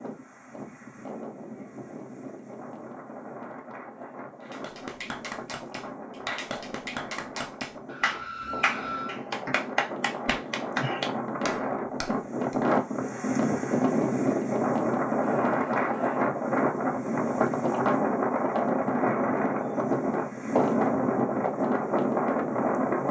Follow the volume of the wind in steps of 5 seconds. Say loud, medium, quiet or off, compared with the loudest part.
quiet, quiet, loud, loud, loud.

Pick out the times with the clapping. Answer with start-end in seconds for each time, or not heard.
4.4-12.6.